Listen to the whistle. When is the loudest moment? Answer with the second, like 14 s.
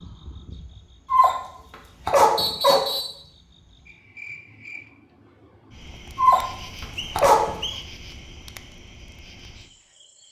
3 s.